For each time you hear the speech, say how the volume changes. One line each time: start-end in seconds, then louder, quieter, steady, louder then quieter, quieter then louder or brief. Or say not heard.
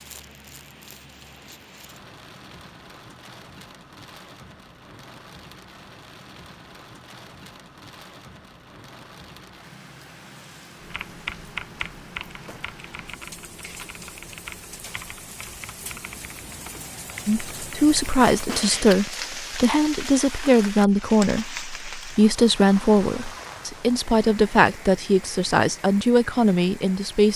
17.2-27.3 steady.